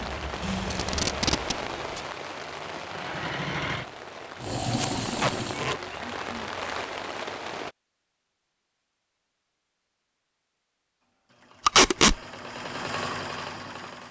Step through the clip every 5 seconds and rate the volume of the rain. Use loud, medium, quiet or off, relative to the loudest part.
loud, loud, off.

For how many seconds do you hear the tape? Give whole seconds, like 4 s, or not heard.
3 s.